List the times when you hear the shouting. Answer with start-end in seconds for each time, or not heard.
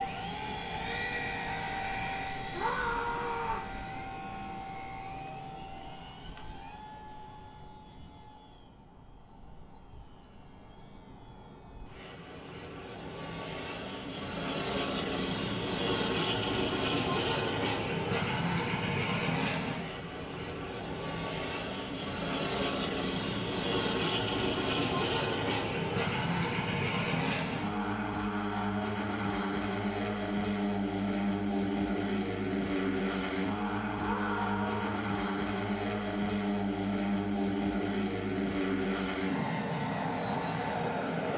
2.5-3.7, 34.0-35.0.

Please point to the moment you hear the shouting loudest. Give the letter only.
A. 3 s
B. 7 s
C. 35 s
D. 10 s
A.